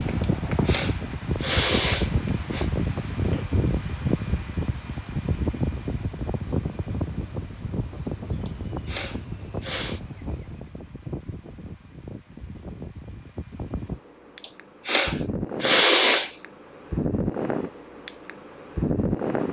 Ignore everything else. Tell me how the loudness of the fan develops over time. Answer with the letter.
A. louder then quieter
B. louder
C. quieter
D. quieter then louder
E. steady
D.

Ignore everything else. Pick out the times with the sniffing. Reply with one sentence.
The sniffing can be heard from 0.2 to 2.7 s, from 8.4 to 10.0 s and from 14.4 to 16.4 s.